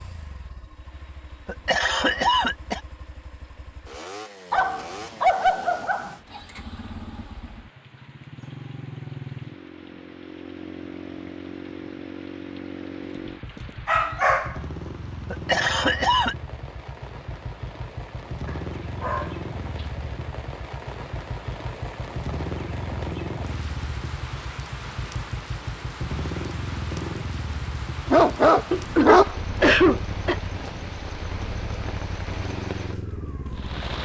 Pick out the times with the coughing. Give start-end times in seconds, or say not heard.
1.4-2.8, 15.3-16.4, 28.7-30.4.